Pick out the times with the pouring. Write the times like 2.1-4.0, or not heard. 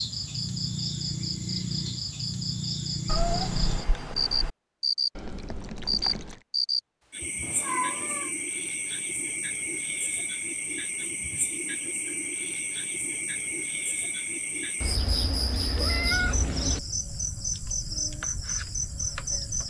5.2-6.5.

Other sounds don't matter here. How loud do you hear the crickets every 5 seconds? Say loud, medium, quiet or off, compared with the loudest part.
loud, loud, medium, loud.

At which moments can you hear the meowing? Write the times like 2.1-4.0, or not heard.
3.0-4.5, 7.4-8.3, 14.8-16.8.